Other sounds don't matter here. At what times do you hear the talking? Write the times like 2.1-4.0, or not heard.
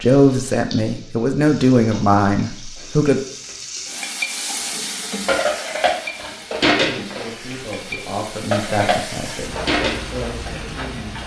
0.0-3.2, 6.8-11.2.